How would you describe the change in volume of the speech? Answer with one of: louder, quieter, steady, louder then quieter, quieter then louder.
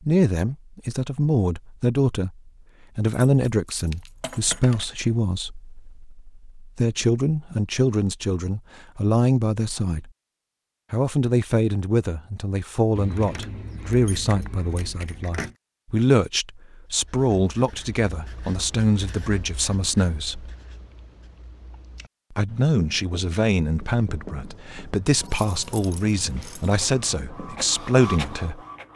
steady.